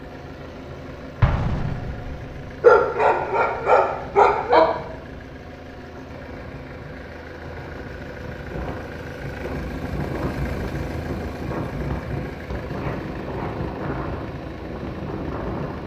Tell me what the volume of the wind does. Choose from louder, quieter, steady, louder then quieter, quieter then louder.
louder.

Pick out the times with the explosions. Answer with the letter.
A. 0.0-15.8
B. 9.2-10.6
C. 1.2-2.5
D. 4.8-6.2
C.